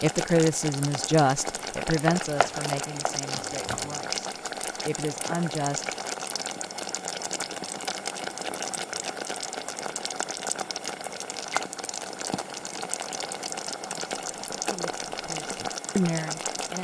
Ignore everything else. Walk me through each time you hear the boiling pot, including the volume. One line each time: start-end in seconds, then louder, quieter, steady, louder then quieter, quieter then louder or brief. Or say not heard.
0.0-16.7 steady.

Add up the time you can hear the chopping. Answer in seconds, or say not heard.
2 s.